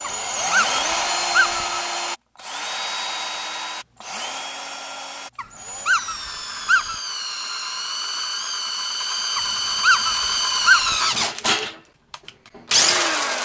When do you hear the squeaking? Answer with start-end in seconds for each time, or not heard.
0.0-1.8, 5.3-7.0, 9.3-11.2.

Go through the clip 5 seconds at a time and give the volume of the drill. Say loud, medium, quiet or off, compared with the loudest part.
medium, medium, loud.